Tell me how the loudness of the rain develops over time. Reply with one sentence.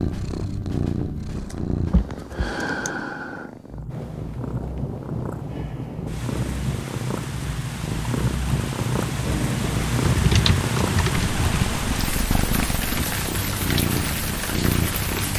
The loudness of the rain goes up.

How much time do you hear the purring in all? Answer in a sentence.
You can hear the purring for 15 seconds altogether.